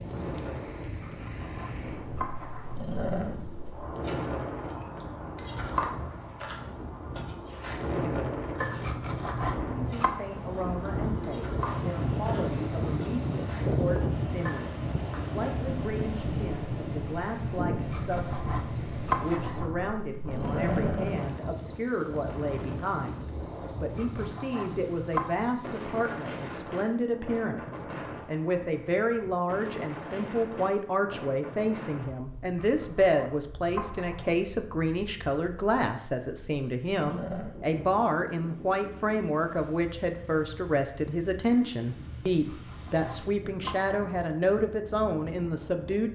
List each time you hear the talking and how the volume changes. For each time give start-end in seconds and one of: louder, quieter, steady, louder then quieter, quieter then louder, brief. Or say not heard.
9.7-46.1 louder.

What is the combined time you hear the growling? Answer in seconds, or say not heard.
2 s.